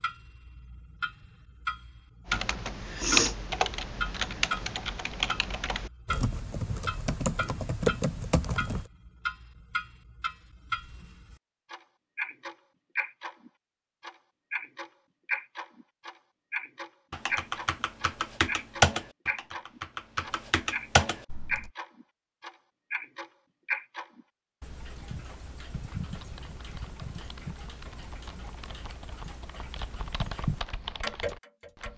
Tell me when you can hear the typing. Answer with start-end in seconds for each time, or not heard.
2.2-8.9, 17.1-21.7, 25.9-31.9.